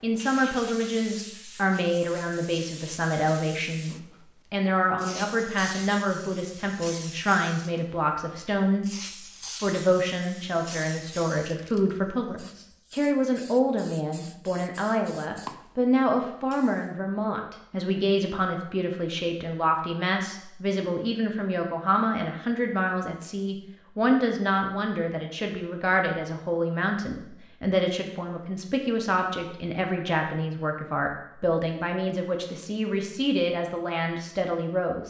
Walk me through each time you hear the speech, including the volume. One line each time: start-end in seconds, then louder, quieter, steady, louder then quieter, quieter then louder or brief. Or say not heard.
0.0-8.9 steady
9.6-35.0 steady.